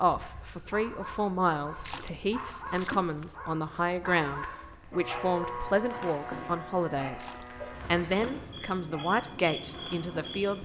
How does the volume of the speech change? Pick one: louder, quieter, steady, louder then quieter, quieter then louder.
steady.